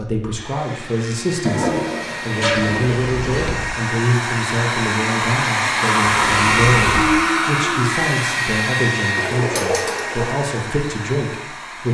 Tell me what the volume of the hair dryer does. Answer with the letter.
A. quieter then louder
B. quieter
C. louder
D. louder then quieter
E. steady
D.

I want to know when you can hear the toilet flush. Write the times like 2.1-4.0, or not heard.
1.4-2.8, 9.2-10.3.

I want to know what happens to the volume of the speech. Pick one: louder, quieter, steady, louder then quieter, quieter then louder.
steady.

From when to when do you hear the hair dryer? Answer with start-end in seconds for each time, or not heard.
0.0-11.8.